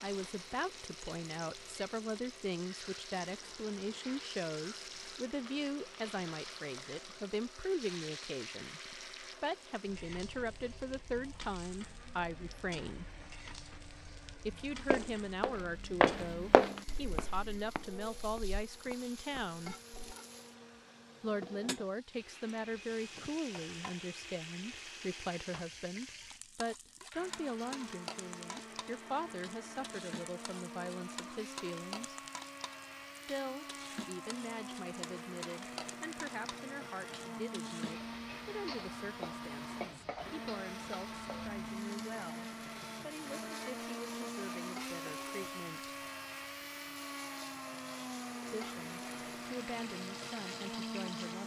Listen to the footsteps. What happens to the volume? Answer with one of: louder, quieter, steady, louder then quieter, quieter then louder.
quieter.